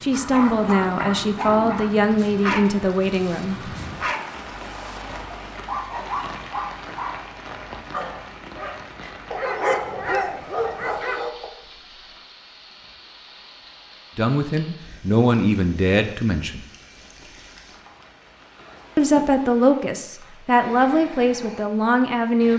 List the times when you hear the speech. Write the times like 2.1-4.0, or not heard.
0.0-3.7, 14.2-16.6, 18.9-22.5.